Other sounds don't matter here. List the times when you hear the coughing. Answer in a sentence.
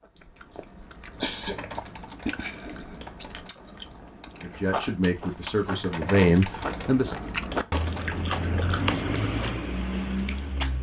The coughing can be heard from 0.1 to 1.8 s.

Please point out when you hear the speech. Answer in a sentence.
You can hear the speech from 4.4 to 7.0 s.